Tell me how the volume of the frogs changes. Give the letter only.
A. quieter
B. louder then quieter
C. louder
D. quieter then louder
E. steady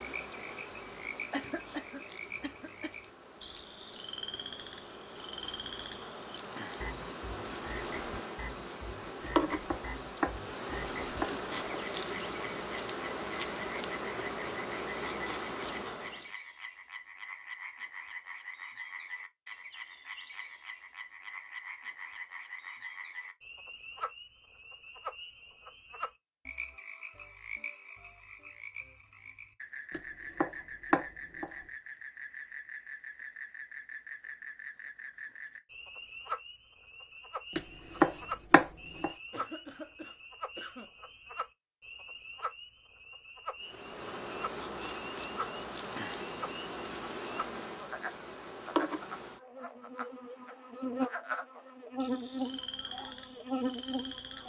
E.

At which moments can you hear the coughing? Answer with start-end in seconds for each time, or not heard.
1.3-2.9, 39.3-40.9.